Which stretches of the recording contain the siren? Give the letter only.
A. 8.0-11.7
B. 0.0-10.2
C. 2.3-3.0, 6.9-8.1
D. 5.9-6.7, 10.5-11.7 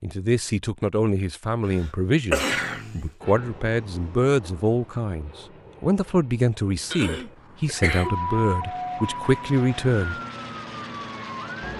A.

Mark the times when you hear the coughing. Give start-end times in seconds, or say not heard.
2.3-3.0, 6.9-8.1.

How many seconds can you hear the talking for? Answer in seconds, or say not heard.
10 s.